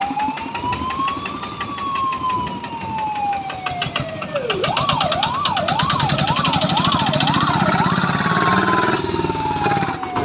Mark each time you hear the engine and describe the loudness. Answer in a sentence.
The engine can be heard from 0.0 to 10.2 s, getting louder.